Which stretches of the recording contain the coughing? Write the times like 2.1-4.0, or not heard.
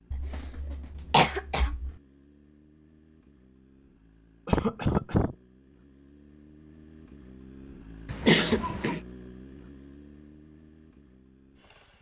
0.1-1.9, 4.5-5.3, 8.1-9.0.